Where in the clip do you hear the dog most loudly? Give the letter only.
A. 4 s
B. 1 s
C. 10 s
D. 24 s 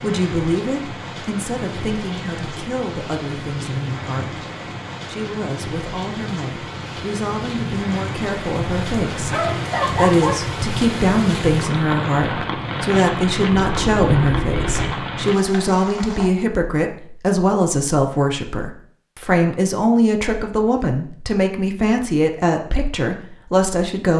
C.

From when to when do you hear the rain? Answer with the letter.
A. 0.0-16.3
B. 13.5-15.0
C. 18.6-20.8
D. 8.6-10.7
A.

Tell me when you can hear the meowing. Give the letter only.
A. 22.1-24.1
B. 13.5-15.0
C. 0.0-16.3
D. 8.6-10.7
B.